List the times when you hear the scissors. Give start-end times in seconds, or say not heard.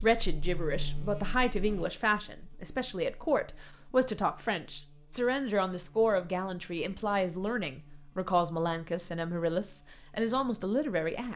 not heard.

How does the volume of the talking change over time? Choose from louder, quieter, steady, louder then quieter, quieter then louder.
steady.